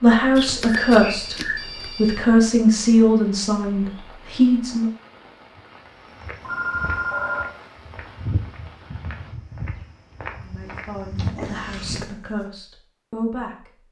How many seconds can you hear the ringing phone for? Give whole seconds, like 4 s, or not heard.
4 s.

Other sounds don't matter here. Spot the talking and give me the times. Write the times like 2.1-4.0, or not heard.
0.0-1.4, 1.9-4.9, 10.4-13.8.